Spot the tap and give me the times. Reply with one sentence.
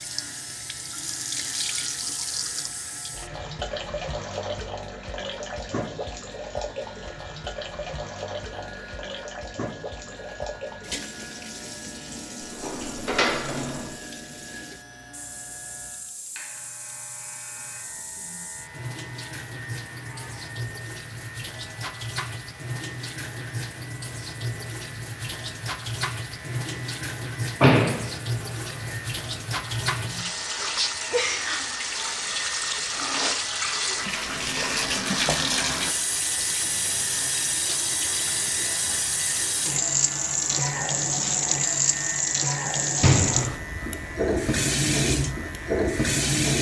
You can hear the tap from 0.0 to 46.5 s.